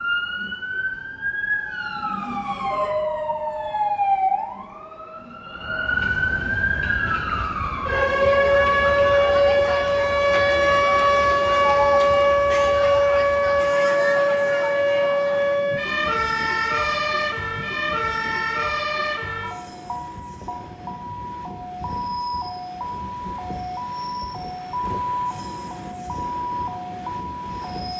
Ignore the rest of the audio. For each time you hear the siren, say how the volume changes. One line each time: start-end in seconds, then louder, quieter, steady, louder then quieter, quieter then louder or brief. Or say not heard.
0.0-27.9 louder then quieter.